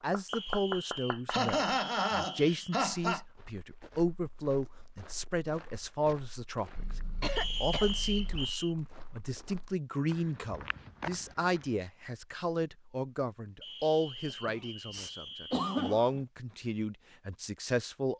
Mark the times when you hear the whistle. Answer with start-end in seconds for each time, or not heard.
0.2-2.5, 7.3-8.8, 13.6-15.9.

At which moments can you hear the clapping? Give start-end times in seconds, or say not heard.
0.0-1.6.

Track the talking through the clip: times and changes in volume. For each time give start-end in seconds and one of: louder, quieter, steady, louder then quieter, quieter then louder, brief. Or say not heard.
0.0-18.1 steady.